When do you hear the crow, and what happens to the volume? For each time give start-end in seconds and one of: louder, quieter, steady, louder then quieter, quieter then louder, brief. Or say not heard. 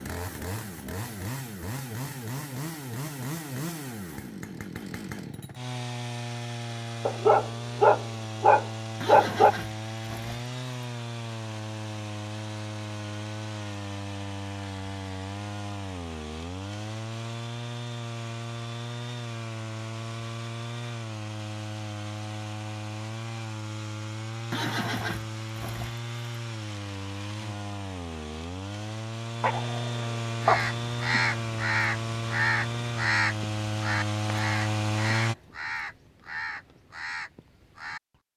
30.4-38.0 quieter.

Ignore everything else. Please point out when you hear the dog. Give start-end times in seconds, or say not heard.
7.0-9.6, 29.4-30.6.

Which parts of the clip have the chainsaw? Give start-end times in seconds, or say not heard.
0.0-35.4.